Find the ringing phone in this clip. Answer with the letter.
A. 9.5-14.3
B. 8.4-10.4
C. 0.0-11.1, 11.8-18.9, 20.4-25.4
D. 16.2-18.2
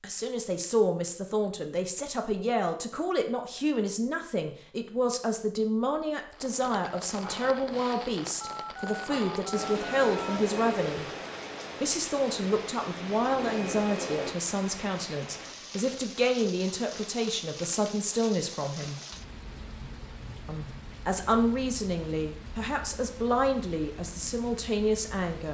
B.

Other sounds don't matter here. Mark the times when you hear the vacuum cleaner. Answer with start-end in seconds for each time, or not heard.
9.5-14.3.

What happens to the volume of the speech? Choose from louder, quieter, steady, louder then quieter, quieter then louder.
steady.